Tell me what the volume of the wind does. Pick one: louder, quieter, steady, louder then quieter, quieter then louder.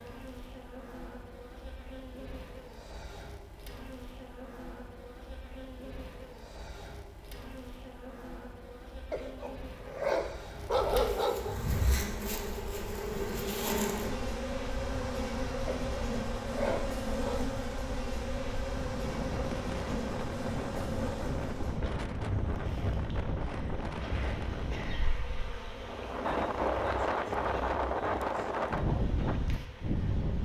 louder.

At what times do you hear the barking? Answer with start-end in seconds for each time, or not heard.
9.1-11.6, 15.7-17.4.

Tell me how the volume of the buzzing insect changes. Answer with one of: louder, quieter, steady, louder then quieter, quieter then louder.
louder then quieter.